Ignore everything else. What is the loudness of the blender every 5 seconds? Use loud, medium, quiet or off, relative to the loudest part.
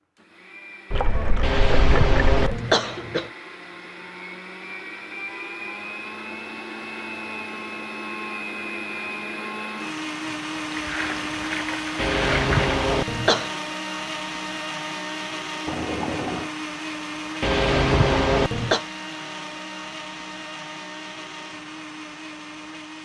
medium, loud, loud, loud, medium.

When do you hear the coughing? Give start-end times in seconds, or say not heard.
1.4-3.3, 11.9-13.6, 17.4-18.9.